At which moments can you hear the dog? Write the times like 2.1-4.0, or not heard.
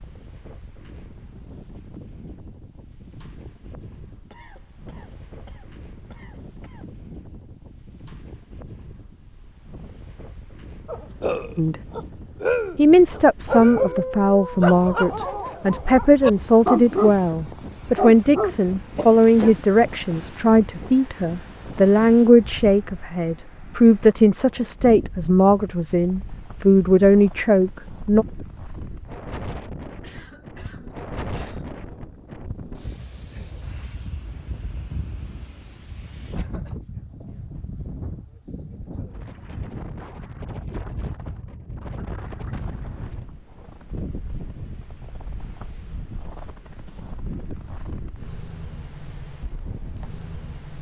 10.8-19.6.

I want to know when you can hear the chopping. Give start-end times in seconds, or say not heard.
not heard.